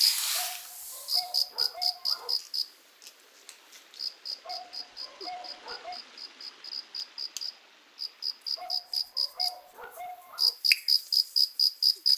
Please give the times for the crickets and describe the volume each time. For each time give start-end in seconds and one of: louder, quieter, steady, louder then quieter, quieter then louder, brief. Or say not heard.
0.0-12.1 quieter then louder.